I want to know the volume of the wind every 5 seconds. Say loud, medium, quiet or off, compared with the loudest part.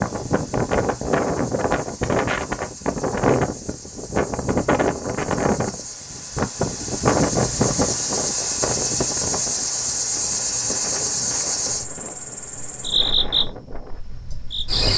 loud, loud, quiet.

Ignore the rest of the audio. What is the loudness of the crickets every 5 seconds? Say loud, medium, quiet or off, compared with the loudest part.
quiet, loud, loud.